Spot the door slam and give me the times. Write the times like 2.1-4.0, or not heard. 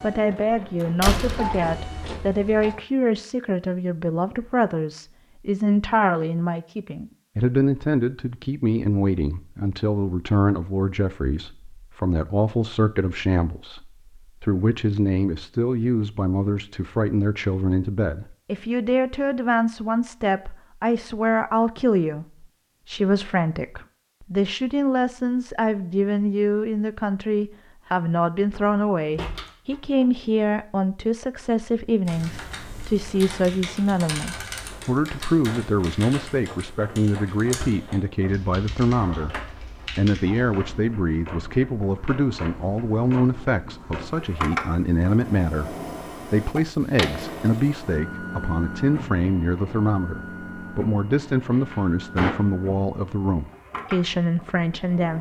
0.5-2.5, 28.6-30.1, 51.5-52.4.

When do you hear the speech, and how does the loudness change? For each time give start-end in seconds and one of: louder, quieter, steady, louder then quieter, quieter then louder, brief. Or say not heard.
0.0-55.1 steady.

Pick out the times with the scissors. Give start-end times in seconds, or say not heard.
not heard.